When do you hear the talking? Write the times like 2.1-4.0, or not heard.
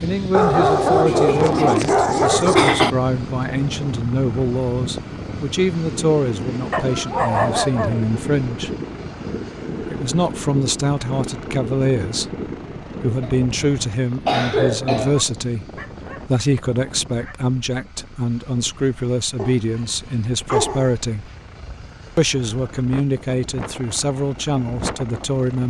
0.0-8.7, 9.8-12.3, 13.0-21.3, 22.1-25.6.